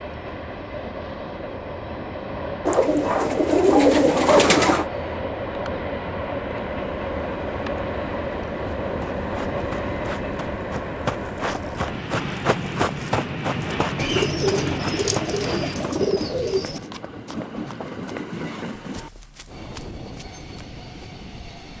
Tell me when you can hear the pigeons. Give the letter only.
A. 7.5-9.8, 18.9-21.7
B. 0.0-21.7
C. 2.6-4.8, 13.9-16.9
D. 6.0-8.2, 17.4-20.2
C.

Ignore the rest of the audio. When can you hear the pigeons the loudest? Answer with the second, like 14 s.
4 s.